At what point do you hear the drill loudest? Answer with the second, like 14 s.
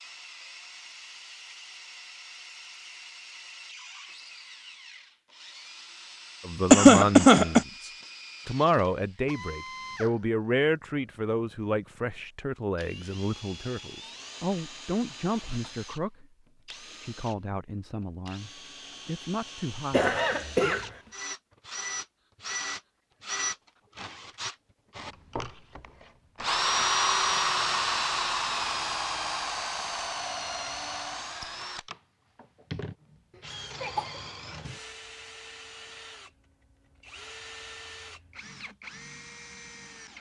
27 s.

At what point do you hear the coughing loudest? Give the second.
7 s.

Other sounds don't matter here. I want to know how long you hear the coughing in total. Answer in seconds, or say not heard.
3 s.